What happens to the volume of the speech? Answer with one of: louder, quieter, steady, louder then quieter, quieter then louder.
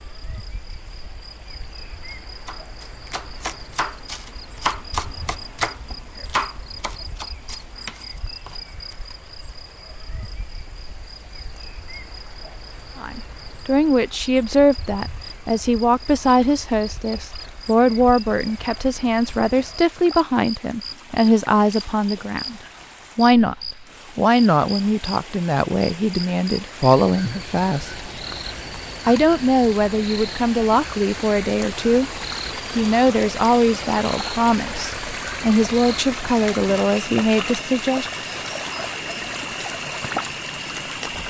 steady.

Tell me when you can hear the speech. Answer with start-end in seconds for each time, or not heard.
13.0-23.6, 24.1-28.0, 29.1-32.1, 32.8-38.1.